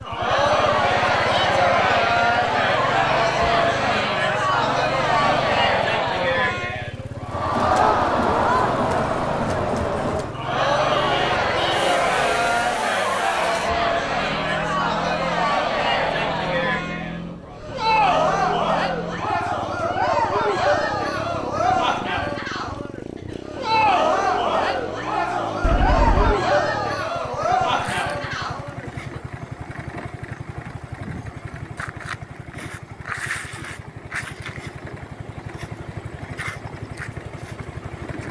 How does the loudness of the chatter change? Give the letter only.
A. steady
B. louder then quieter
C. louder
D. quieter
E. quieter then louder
A.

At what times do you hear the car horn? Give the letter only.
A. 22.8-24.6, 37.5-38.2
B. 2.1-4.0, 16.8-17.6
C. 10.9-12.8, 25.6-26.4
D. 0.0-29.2
C.